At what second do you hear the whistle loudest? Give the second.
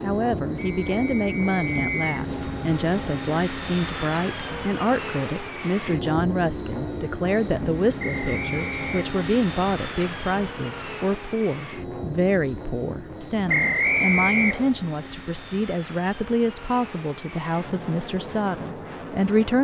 14 s.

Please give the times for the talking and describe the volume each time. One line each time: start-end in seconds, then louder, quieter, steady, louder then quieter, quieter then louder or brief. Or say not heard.
0.0-19.5 steady.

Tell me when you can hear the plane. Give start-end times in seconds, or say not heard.
0.0-19.5.